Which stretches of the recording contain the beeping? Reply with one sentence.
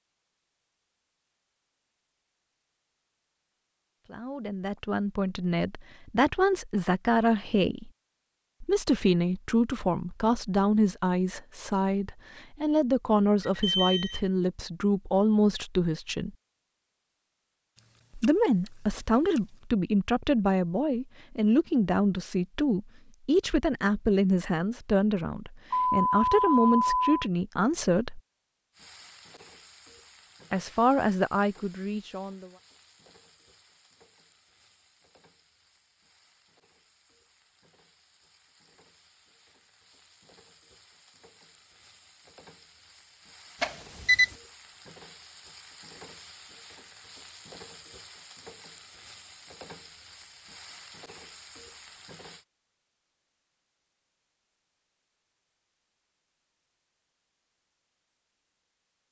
The beeping can be heard from 13.4 to 14.2 s, from 25.7 to 27.2 s and from 43.6 to 44.2 s.